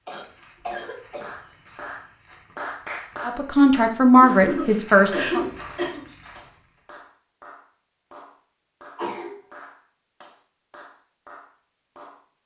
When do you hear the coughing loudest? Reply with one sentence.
The loudest moment of the coughing is at 5 seconds.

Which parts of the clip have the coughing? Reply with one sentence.
The coughing can be heard from 0.1 to 1.3 s, from 4.2 to 6.0 s and from 8.9 to 9.3 s.